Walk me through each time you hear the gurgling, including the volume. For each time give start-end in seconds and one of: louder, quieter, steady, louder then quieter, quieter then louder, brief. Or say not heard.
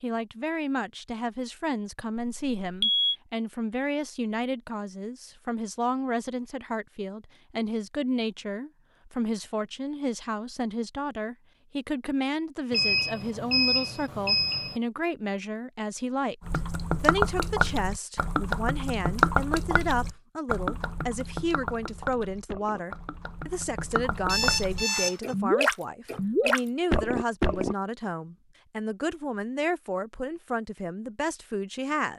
16.4-27.8 quieter then louder.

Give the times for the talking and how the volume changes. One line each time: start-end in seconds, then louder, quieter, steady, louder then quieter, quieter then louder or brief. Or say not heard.
0.0-32.1 steady.